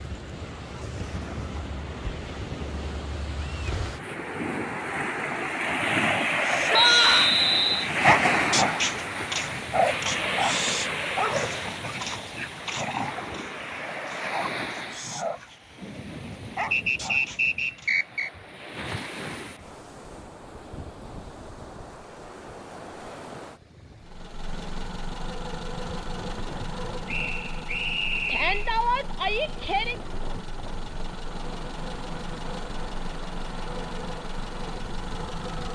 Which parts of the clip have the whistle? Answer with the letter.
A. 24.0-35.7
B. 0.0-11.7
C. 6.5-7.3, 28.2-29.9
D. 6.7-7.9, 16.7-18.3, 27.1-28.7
D.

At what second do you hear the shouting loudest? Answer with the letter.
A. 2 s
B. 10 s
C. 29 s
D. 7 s
D.